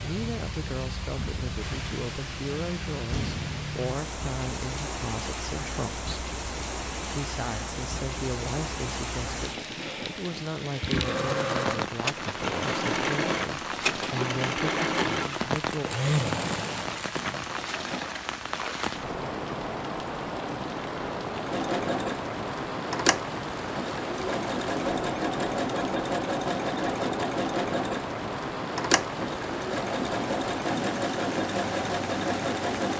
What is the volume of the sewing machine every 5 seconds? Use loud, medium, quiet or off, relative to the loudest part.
off, off, loud, loud, loud, loud, loud.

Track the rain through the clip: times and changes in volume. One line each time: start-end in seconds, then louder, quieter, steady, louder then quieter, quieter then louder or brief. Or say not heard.
0.0-32.9 steady.